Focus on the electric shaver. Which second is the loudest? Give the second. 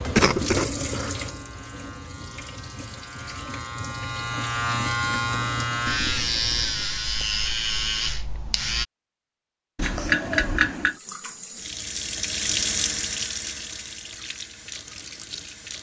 6 s.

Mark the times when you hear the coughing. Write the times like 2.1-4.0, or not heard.
0.1-1.3, 9.8-10.9.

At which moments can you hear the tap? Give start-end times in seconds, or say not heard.
0.0-7.0, 10.7-15.7.